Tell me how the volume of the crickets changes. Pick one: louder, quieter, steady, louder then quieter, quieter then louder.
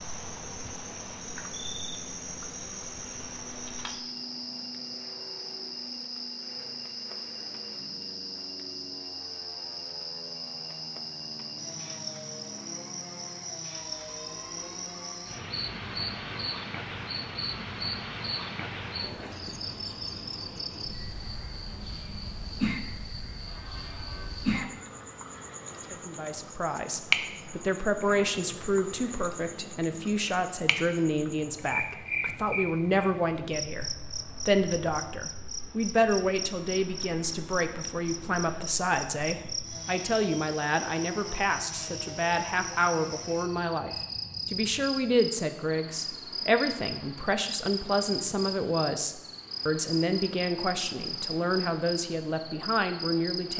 steady.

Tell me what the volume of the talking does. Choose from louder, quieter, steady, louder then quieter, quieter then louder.
steady.